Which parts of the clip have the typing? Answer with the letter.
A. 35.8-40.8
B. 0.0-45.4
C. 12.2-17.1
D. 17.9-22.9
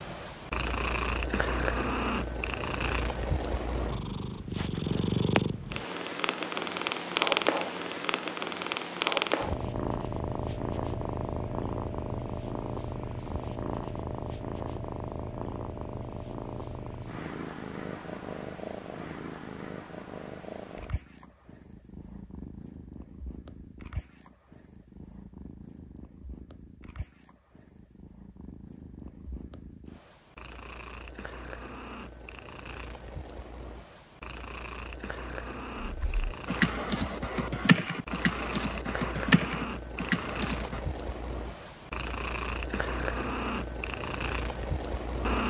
A.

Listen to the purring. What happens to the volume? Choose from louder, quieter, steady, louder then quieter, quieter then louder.
quieter then louder.